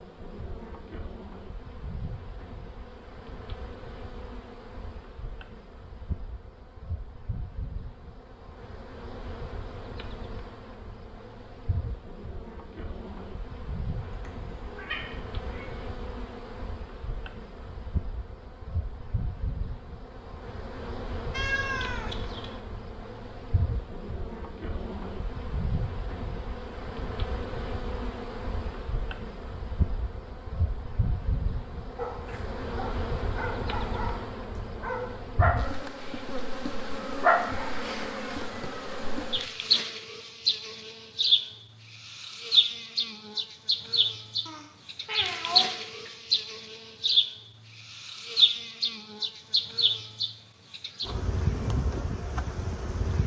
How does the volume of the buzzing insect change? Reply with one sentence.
The loudness of the buzzing insect goes up.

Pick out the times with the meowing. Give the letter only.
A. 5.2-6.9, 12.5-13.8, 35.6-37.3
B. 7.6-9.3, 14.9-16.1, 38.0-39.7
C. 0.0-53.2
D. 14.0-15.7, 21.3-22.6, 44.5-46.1
D.